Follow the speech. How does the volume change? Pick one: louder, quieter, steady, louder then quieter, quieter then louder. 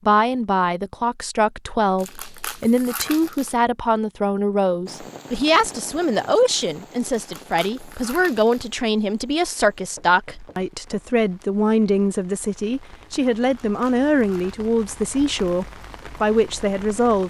steady.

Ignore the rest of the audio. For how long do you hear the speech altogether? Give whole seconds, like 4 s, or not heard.
17 s.